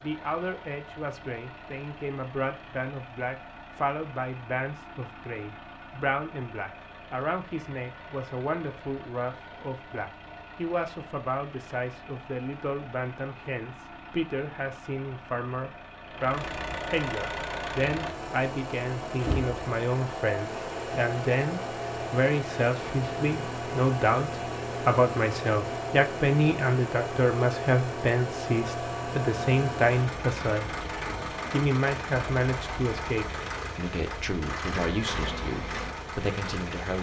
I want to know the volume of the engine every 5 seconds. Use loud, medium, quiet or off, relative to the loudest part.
quiet, quiet, quiet, loud, loud, loud, loud, loud.